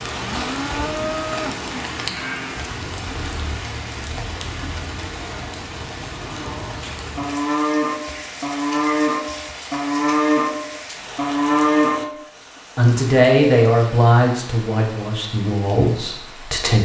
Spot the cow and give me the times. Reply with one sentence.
You can hear the cow from 0.0 to 2.7 s and from 6.3 to 12.2 s.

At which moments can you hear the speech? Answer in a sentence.
The speech can be heard from 12.8 to 16.7 s.